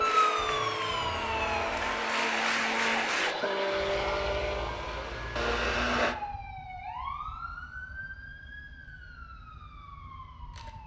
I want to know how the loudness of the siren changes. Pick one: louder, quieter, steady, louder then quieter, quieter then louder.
quieter.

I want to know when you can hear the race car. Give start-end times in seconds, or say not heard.
0.0-6.2.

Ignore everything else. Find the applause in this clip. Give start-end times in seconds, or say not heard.
0.0-3.4.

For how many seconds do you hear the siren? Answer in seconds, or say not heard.
11 s.